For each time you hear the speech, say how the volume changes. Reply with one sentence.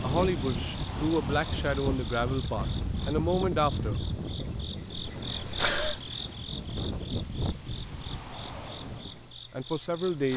The speech can be heard from 0.0 to 4.5 s, at a steady volume; and briefly from 9.1 to 10.3 s.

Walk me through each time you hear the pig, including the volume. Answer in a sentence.
The pig can't be heard in this clip.